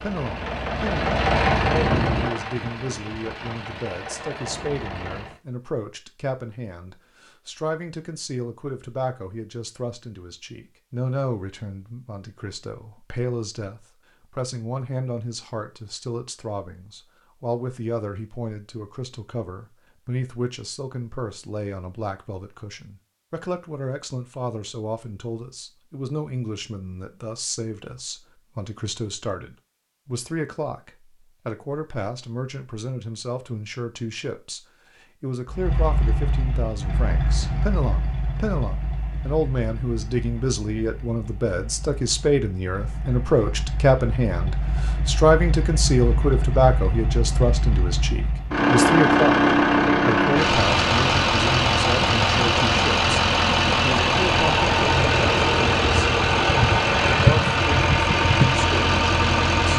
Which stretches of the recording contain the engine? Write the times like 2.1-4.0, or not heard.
0.0-5.4, 35.5-59.7.